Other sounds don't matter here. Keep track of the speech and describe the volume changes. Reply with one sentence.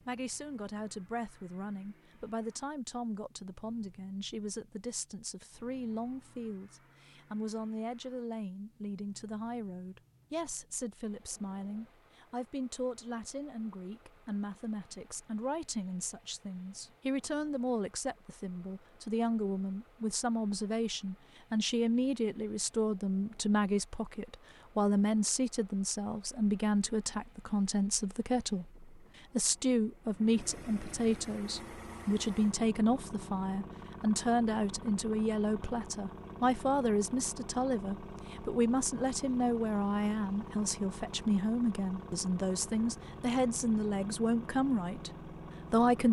The volume of the speech goes up.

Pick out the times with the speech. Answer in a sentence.
You can hear the speech from 0.1 to 46.0 s.